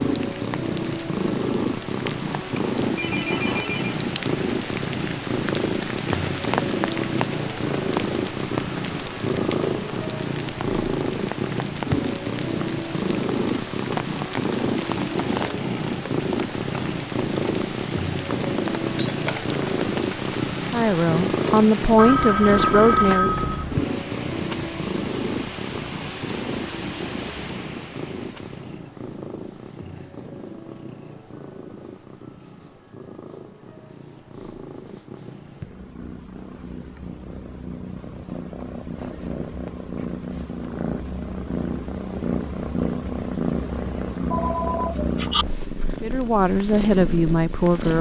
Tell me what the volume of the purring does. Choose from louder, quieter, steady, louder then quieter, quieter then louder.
quieter then louder.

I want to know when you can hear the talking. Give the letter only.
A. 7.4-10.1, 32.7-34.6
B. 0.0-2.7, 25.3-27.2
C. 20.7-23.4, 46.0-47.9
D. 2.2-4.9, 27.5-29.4
C.